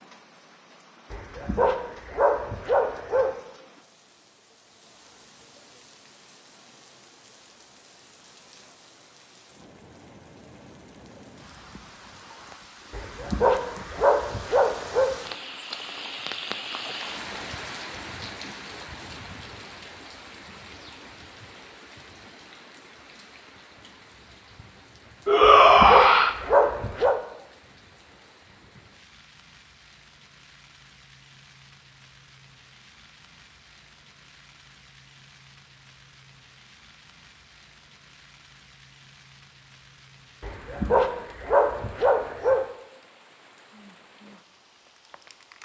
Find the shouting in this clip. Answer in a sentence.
The shouting can be heard from 25.2 to 26.4 s.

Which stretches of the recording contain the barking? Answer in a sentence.
You can hear the barking from 1.1 to 3.4 s, from 12.9 to 15.1 s, from 25.4 to 27.2 s and from 40.4 to 42.6 s.